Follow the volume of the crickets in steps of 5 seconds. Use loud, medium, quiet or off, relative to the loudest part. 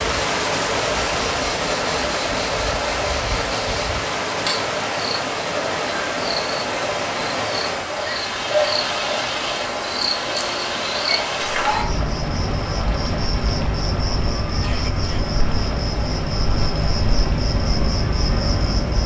medium, loud, loud, loud.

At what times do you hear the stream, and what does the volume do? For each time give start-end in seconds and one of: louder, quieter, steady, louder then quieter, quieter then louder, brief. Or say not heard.
0.0-19.0 quieter.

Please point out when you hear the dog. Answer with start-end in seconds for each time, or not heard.
not heard.